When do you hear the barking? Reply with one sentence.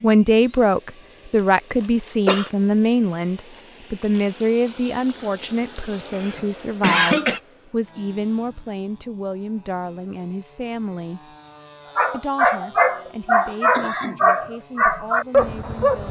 You can hear the barking from 11.9 to 16.0 s.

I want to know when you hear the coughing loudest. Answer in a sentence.
The volume of the coughing peaks at 7 seconds.